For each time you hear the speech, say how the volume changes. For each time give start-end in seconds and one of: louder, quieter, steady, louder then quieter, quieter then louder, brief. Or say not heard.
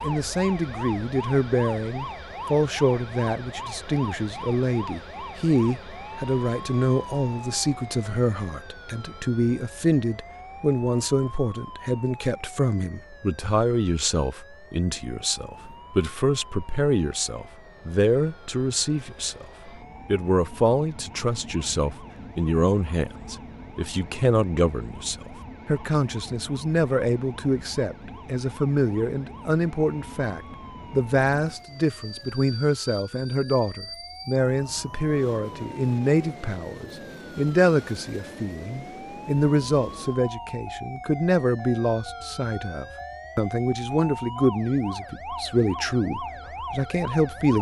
0.0-19.4 steady
20.1-47.5 steady.